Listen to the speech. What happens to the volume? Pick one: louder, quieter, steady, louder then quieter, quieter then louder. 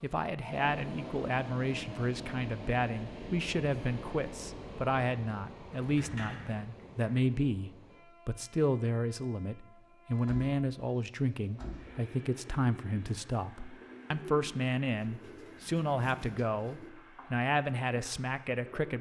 steady.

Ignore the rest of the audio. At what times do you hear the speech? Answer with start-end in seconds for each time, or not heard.
0.0-18.9.